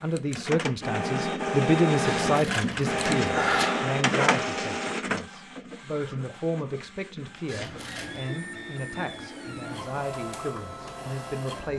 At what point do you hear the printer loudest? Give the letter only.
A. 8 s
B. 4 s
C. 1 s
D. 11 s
B.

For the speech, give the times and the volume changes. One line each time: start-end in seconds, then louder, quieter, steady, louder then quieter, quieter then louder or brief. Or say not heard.
0.0-11.7 quieter.